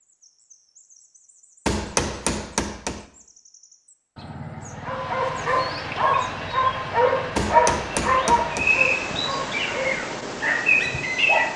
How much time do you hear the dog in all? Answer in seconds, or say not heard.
7 s.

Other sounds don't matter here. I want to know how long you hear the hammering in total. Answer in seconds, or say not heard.
3 s.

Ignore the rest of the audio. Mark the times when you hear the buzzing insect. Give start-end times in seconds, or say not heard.
not heard.